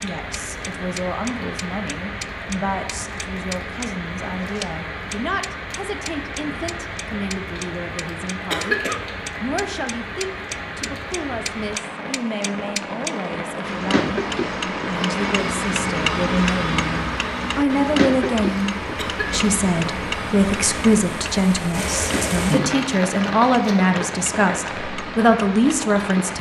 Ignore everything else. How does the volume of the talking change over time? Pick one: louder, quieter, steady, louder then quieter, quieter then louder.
louder.